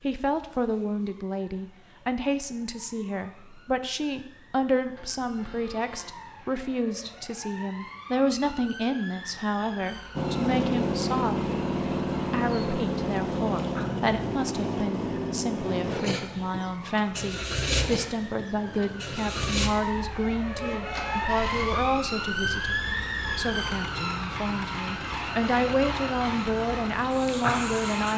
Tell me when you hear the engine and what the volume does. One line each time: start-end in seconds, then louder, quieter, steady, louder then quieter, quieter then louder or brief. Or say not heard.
10.2-28.1 quieter.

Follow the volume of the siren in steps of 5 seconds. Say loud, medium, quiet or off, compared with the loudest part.
quiet, quiet, quiet, medium, loud, loud.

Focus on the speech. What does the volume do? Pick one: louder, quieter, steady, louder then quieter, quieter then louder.
steady.